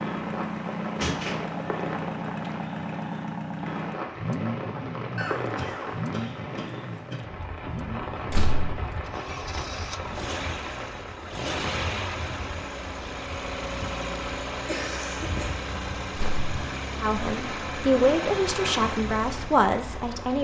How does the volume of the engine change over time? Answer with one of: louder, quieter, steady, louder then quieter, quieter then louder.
steady.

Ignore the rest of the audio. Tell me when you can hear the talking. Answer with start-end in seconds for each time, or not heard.
17.0-20.3.